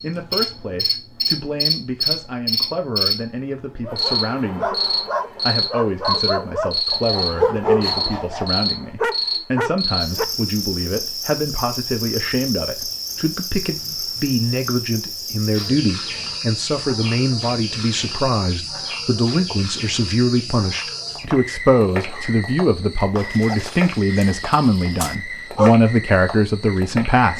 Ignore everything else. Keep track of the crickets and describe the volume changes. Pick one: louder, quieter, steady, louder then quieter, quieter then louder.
quieter.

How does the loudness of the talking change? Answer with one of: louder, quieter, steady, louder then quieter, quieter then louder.
louder.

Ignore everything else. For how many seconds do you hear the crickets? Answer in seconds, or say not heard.
27 s.